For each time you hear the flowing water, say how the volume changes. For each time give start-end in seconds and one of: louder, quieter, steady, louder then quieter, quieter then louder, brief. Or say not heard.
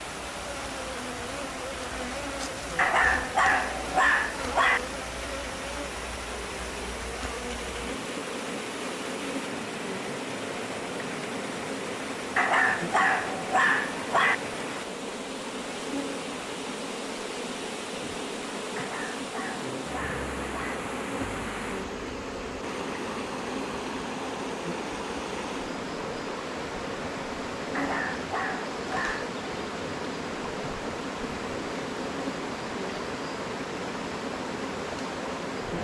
0.0-35.7 steady.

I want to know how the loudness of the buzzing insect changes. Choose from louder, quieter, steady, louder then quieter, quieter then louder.
steady.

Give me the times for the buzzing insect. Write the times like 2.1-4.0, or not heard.
0.0-35.7.